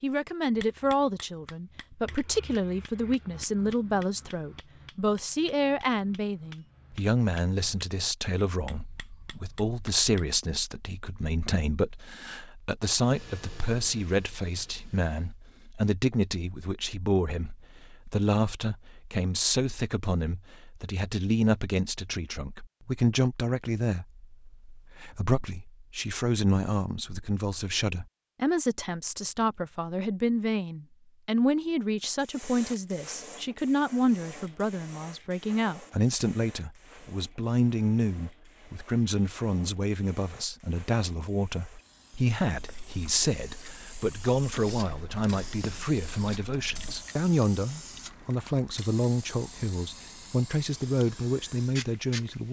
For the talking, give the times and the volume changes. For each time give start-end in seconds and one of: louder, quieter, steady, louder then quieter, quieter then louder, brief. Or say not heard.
0.0-52.4 steady.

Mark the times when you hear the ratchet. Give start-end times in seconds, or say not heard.
not heard.